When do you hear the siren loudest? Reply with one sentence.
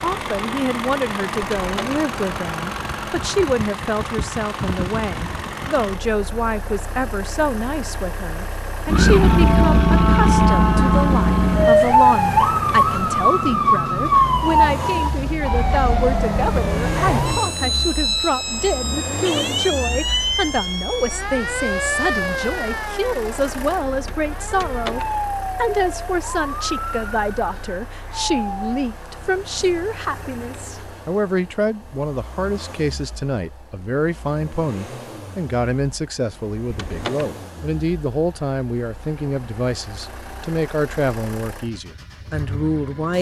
The volume of the siren peaks at 12 seconds.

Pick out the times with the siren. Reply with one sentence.
The siren can be heard from 8.8 to 28.6 s.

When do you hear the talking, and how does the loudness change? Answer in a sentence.
The talking can be heard from 0.0 to 43.1 s, at a steady volume.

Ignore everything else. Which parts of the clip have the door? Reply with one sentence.
You can hear the door from 1.4 to 2.0 s, from 24.5 to 25.1 s and from 36.7 to 37.3 s.